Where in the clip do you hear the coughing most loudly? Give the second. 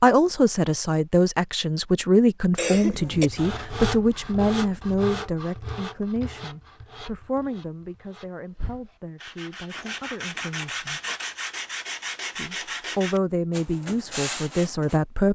3 s.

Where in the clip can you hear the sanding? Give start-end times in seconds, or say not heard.
3.1-14.9.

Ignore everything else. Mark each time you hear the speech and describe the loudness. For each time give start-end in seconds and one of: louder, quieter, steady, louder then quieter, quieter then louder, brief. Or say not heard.
0.0-11.0 quieter
12.3-15.3 brief.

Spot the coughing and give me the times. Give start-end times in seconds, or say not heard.
2.5-3.3, 9.7-11.2.